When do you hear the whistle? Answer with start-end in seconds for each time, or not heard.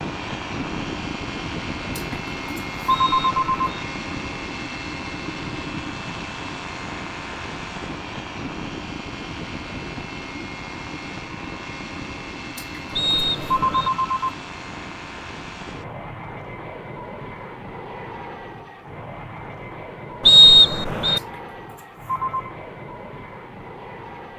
2.9-3.9, 12.9-13.9, 20.2-21.2.